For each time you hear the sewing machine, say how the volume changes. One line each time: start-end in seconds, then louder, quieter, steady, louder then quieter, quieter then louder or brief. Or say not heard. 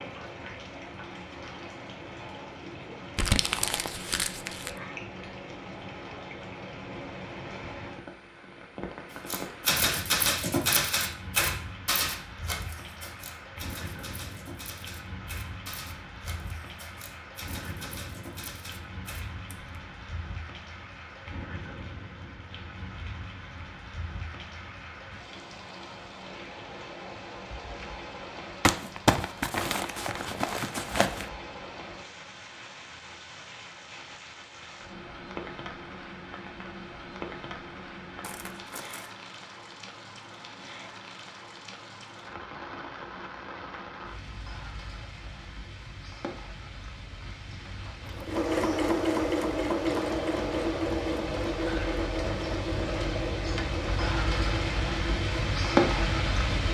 48.0-56.6 quieter.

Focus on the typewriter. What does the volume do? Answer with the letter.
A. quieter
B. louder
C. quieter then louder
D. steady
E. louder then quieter
A.